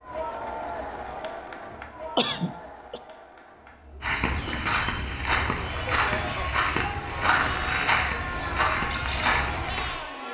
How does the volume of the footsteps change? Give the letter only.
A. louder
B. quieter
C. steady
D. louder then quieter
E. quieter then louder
C.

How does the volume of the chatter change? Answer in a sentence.
The loudness of the chatter goes down, then up.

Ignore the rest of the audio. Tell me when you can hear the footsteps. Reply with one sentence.
You can hear the footsteps from 4.0 to 10.0 s.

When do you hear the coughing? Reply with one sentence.
You can hear the coughing from 2.1 to 3.0 s.